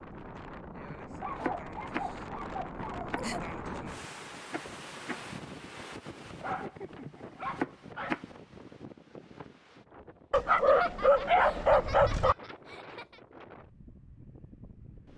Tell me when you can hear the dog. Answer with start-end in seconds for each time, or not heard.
1.2-3.4, 6.3-8.2, 10.3-12.3.